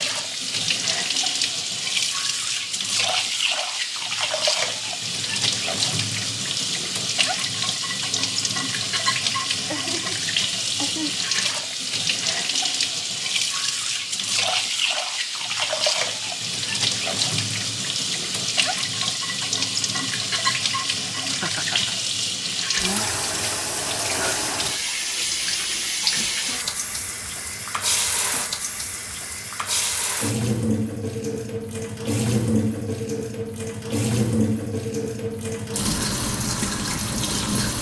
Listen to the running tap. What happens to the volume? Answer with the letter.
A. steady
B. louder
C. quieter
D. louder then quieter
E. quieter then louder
A.